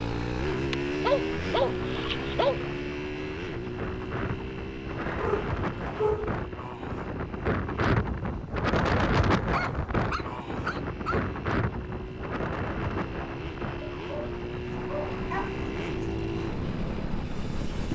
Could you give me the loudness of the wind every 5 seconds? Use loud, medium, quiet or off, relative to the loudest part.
medium, loud, medium, quiet.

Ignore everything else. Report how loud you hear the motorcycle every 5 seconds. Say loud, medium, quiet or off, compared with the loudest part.
loud, medium, medium, loud.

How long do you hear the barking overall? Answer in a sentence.
You can hear the barking for 7 seconds altogether.